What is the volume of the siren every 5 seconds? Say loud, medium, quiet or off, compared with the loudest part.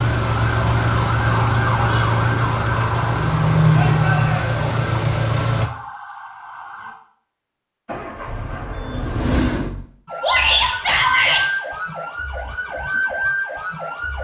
loud, medium, loud.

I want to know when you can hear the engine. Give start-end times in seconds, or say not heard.
0.0-5.7, 7.8-9.8.